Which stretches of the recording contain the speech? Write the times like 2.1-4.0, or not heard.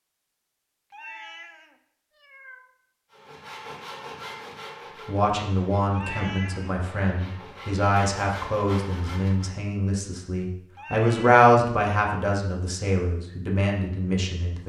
5.0-14.6.